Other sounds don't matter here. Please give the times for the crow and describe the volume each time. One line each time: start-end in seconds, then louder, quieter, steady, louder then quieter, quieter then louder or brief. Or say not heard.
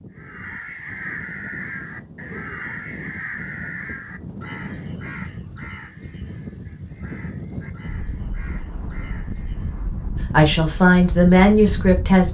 0.1-9.9 quieter.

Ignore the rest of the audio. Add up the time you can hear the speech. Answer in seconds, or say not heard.
2 s.